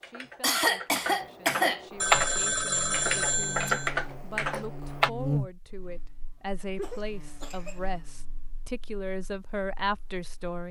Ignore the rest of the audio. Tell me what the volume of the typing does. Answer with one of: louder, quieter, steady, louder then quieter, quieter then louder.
louder then quieter.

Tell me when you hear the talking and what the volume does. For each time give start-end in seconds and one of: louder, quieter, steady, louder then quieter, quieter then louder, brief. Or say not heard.
0.0-10.6 louder.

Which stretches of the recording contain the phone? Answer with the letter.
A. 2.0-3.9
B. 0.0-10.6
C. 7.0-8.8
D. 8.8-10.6
A.